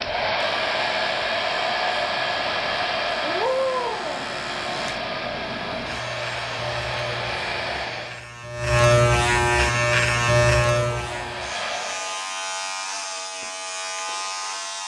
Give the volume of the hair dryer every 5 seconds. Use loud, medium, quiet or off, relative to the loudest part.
loud, medium, medium.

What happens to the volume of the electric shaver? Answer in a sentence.
The loudness of the electric shaver goes up, then down.